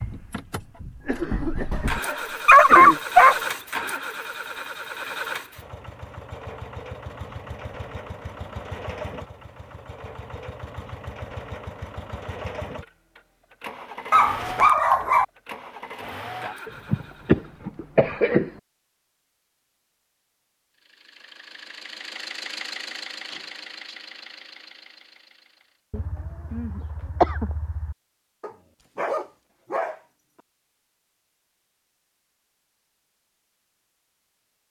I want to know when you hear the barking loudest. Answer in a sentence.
The volume of the barking peaks at 3 seconds.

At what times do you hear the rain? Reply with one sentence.
You can't hear the rain here.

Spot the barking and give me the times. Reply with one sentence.
The barking can be heard from 2.0 to 3.4 s, from 14.1 to 15.2 s and from 28.4 to 30.0 s.